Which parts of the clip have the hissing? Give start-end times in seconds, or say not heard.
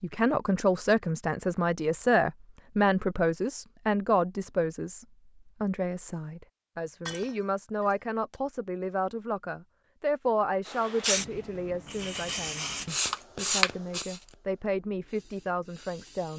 10.7-16.3.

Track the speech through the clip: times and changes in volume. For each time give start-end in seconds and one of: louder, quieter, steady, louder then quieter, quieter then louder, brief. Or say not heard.
0.0-16.3 quieter.